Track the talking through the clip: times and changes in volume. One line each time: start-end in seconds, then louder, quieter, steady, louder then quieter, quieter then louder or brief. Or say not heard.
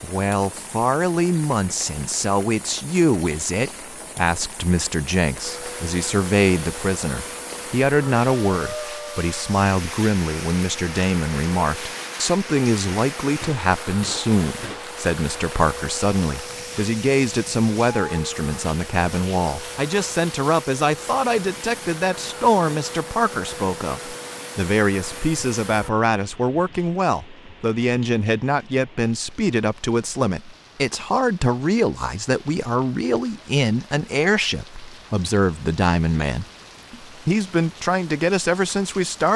0.0-39.3 steady.